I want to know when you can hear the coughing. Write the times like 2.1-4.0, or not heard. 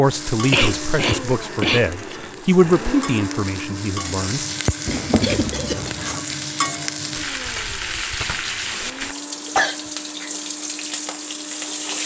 0.5-2.3, 4.8-6.2, 9.4-9.9.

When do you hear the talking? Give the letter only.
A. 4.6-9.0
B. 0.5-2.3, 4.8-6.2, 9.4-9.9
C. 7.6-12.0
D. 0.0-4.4
D.